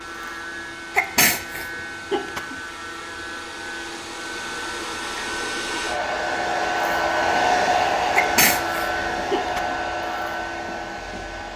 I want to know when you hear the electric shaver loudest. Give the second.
7 s.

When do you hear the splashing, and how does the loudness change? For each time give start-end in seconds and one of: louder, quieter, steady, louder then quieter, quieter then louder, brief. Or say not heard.
not heard.